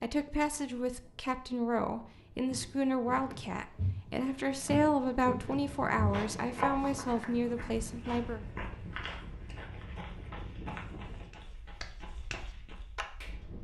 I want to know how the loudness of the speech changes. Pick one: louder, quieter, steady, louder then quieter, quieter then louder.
steady.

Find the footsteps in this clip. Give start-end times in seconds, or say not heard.
2.5-13.1.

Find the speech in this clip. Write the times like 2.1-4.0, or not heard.
0.0-8.4.